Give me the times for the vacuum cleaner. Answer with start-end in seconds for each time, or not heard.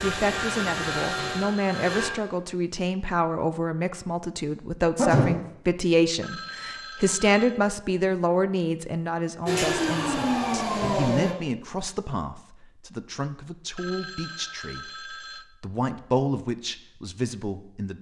0.0-2.1, 9.4-11.3.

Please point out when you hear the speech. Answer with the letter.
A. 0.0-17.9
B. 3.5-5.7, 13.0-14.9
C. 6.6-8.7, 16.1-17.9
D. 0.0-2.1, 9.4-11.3
A.